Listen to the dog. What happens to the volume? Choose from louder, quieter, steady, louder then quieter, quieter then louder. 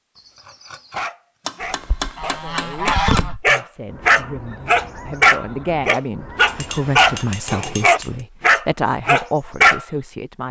louder.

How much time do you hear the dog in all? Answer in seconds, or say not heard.
10 s.